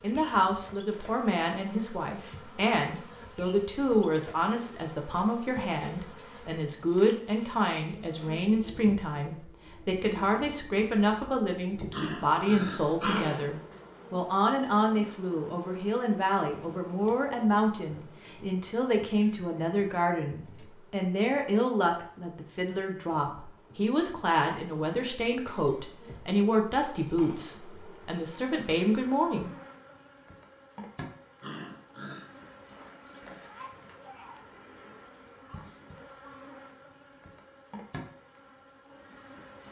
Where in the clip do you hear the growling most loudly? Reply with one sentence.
The loudest moment of the growling is at 13 seconds.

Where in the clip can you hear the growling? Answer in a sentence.
You can hear the growling from 11.9 to 13.5 s and from 31.4 to 32.2 s.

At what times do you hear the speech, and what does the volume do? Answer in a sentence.
You can hear the speech from 0.0 to 29.5 s, at a steady volume.